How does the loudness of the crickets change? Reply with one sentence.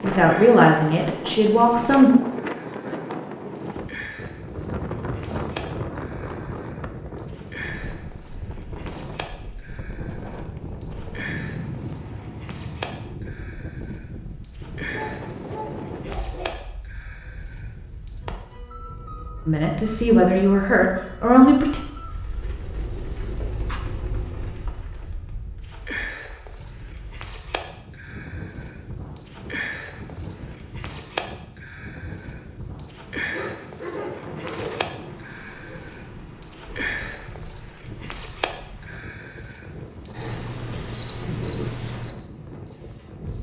The loudness of the crickets goes up.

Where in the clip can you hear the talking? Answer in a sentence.
You can hear the talking from 0.0 to 2.1 s and from 19.4 to 21.8 s.